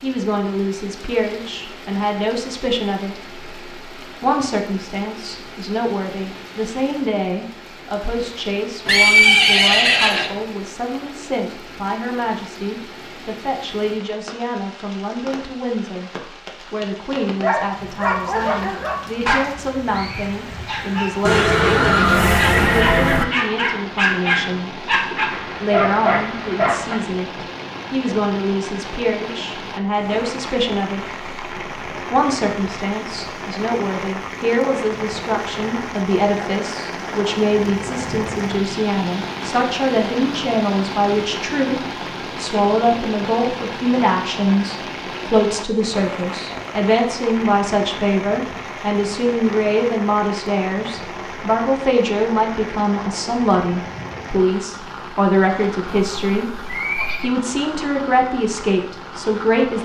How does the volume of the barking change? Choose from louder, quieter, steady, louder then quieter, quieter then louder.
quieter then louder.